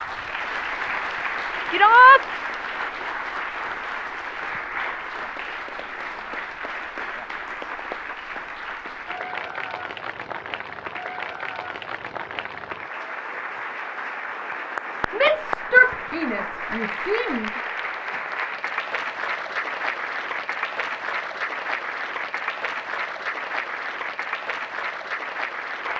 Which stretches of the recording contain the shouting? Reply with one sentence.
You can hear the shouting from 1.7 to 2.2 s and from 15.1 to 17.5 s.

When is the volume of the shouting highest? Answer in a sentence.
The loudest moment of the shouting is at 2 seconds.